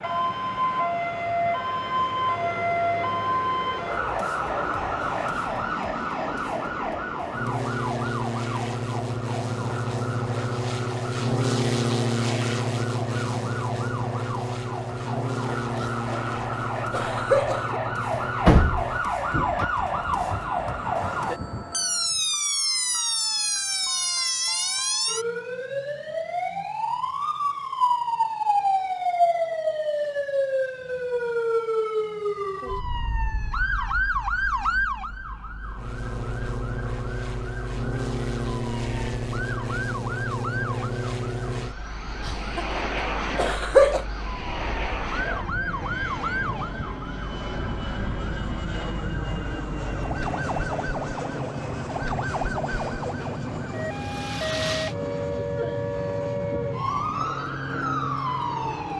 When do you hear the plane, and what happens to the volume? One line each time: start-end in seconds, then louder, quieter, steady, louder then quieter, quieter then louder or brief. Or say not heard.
0.0-22.2 louder then quieter
35.6-58.9 steady.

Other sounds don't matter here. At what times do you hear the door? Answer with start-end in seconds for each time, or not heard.
18.1-19.6.